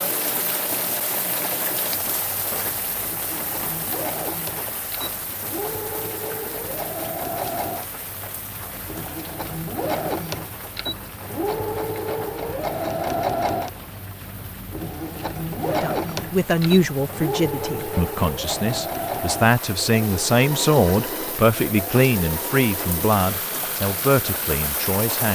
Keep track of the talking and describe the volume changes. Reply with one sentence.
The loudness of the talking stays about the same.